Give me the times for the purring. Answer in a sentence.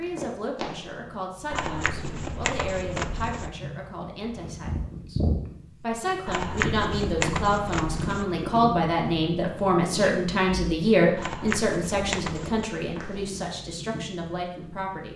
You can hear the purring from 0.0 to 15.1 s.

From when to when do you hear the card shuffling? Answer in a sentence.
You can hear the card shuffling from 1.5 to 3.5 s, from 6.2 to 8.2 s and from 11.2 to 12.7 s.